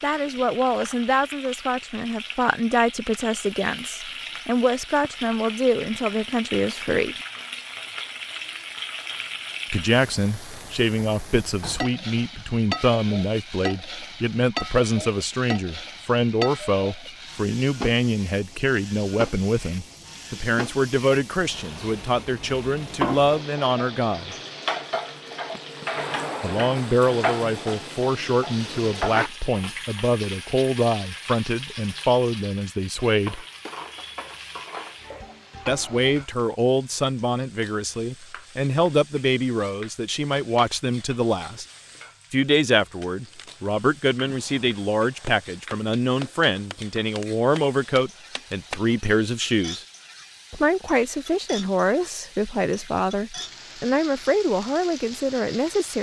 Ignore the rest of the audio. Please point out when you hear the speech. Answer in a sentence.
The speech can be heard from 0.0 to 7.2 s, from 9.7 to 24.4 s, from 26.4 to 33.5 s, from 35.6 to 41.6 s, from 42.3 to 49.9 s and from 50.5 to 55.9 s.